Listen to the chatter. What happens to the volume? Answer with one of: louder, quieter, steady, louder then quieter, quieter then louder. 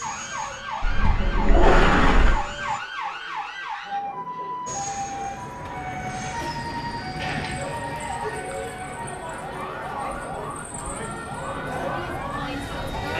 louder.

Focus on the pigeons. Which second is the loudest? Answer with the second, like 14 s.
2 s.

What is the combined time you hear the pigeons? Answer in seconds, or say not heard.
3 s.